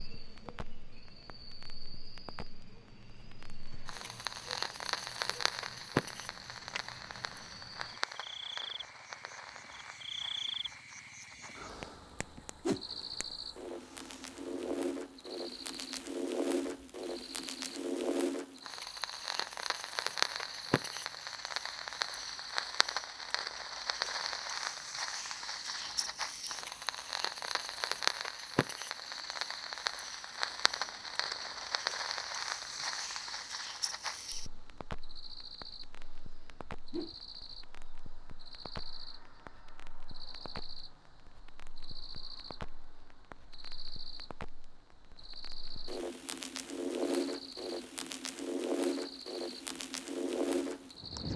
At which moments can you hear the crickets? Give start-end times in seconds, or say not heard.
0.0-51.3.